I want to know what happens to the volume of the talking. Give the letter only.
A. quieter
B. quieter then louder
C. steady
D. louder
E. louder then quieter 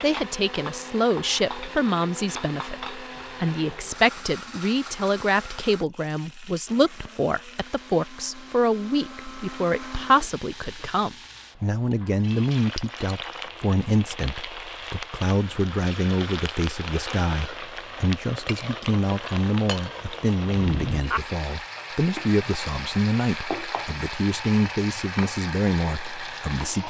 C.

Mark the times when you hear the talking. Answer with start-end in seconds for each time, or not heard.
0.0-26.8.